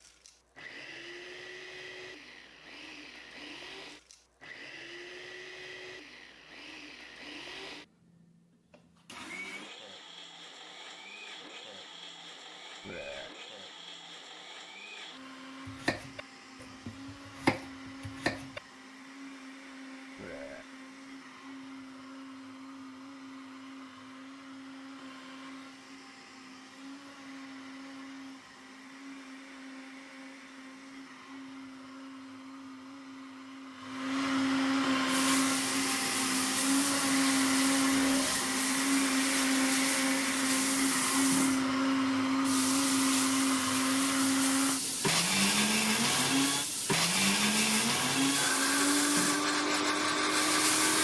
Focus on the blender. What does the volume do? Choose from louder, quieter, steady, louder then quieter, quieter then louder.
louder.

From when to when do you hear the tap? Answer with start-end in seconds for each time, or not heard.
35.0-50.9.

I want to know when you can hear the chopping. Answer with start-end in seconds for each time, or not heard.
15.7-18.6.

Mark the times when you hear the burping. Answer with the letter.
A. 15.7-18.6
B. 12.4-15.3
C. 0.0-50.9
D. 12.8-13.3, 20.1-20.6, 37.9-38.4
D.